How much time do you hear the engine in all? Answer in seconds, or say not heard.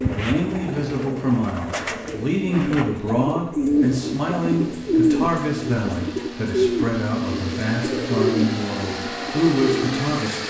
7 s.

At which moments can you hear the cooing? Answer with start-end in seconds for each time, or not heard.
0.0-10.4.